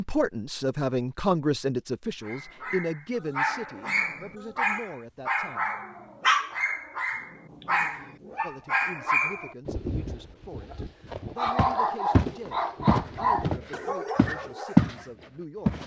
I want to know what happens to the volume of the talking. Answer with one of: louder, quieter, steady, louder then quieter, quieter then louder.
quieter.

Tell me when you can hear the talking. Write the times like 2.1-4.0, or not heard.
0.0-5.7, 8.4-15.8.